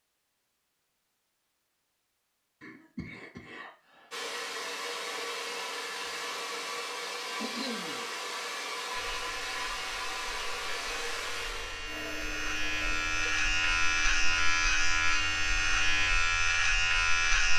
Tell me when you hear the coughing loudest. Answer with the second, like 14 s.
8 s.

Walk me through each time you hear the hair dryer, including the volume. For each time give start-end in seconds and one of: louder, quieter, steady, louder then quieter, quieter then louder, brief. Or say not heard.
4.1-16.1 quieter.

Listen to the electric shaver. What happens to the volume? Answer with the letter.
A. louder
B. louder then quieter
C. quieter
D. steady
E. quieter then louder
A.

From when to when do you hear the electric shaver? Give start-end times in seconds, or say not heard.
8.9-17.5.